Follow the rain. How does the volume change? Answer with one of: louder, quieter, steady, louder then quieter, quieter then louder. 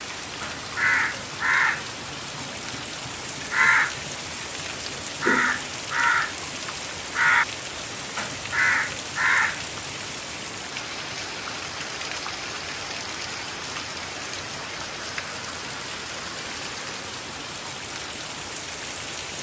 steady.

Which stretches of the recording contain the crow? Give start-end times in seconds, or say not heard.
0.4-9.9.